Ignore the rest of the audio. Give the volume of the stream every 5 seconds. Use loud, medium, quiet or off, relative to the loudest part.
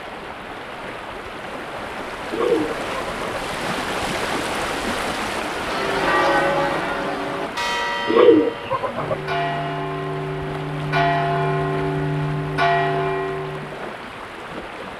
loud, loud, medium.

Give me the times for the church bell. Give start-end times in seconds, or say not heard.
5.5-13.9.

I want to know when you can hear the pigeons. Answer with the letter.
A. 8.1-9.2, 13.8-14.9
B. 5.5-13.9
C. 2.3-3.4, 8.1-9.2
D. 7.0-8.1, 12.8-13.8
C.